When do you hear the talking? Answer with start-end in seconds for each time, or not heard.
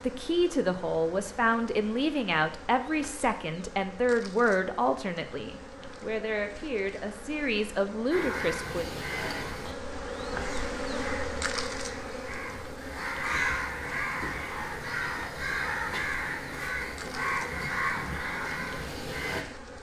0.0-8.8.